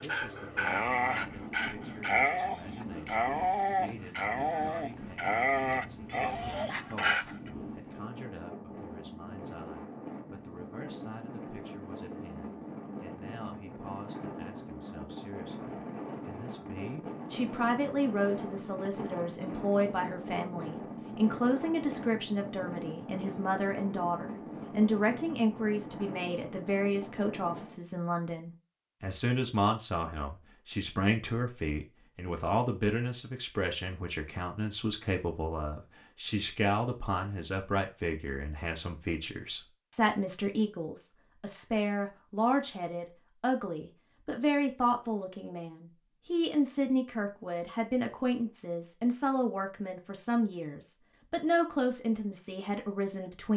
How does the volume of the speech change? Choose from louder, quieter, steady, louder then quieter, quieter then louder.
louder.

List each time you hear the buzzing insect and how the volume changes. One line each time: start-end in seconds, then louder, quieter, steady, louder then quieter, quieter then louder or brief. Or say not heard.
not heard.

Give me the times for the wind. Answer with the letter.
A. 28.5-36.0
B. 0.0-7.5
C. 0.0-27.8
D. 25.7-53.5
C.